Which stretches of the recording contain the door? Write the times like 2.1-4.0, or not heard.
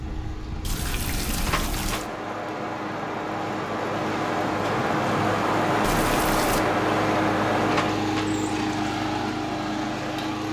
1.4-2.1, 7.7-8.3.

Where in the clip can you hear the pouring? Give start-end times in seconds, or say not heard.
0.6-2.1, 5.8-6.7.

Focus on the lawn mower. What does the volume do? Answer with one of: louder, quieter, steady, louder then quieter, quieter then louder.
louder.